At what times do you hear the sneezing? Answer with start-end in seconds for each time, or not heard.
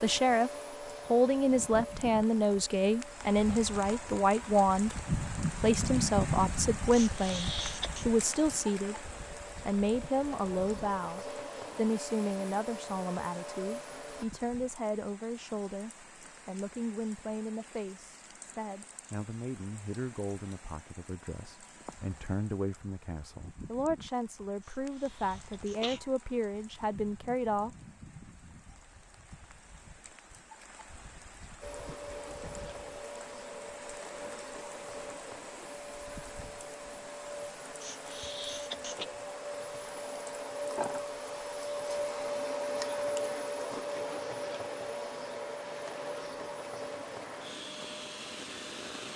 6.9-8.1, 24.6-26.0, 37.8-39.0.